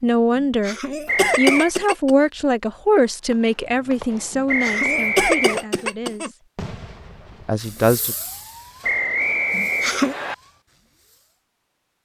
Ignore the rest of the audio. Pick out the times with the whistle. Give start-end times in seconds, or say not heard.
1.1-1.7, 4.5-5.7, 8.8-10.3.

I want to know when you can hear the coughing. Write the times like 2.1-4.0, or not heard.
0.3-2.1, 4.3-6.3, 9.5-10.2.